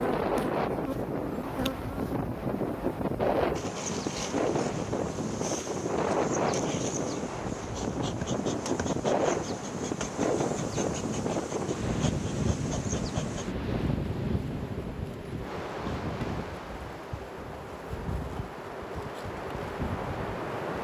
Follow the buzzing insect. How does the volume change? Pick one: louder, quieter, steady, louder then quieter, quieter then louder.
steady.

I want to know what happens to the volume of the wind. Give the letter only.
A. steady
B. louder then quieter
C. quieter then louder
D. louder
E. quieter
E.